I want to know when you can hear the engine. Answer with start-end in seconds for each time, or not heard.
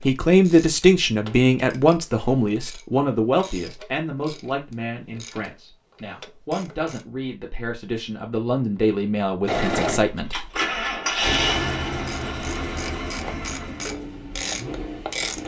9.4-15.4.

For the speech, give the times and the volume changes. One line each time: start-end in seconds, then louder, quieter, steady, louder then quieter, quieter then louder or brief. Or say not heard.
0.0-10.4 quieter then louder.